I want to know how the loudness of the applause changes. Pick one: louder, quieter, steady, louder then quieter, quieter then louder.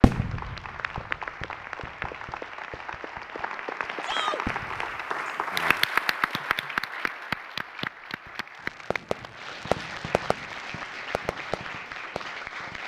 louder then quieter.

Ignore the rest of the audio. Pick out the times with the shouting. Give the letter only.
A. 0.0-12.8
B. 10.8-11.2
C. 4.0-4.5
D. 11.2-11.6
C.